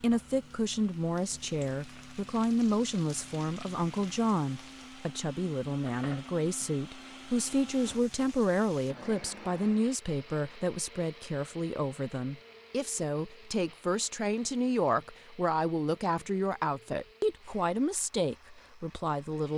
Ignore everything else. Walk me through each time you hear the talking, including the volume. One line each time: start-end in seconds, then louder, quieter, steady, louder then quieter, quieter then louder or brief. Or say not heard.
0.0-19.5 steady.